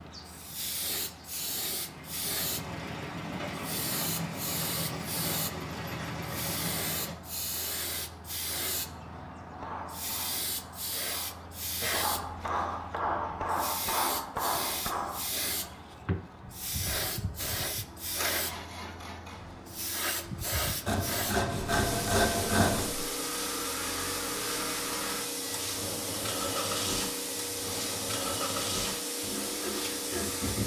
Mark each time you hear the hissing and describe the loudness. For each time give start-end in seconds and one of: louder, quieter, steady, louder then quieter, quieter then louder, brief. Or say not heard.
0.0-30.6 steady.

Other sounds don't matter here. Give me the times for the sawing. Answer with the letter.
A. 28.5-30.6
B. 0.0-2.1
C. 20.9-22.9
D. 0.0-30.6
C.